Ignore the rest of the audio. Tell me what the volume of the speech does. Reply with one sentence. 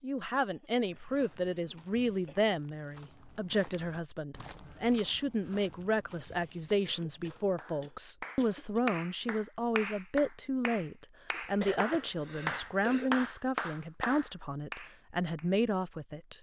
The volume of the speech stays about the same.